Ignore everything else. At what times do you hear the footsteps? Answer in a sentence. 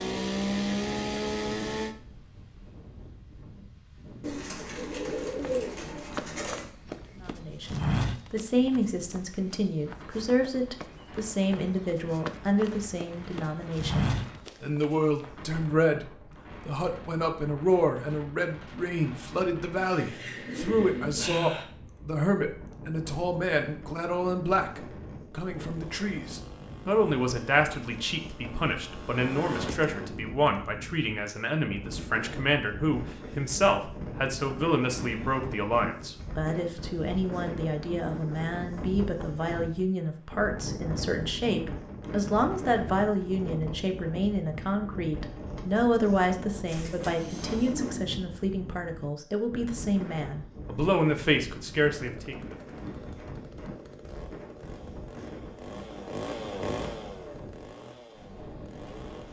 The footsteps can be heard from 5.2 to 15.2 s.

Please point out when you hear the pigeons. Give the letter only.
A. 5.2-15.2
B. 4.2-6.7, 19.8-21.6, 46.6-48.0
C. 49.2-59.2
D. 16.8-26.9
B.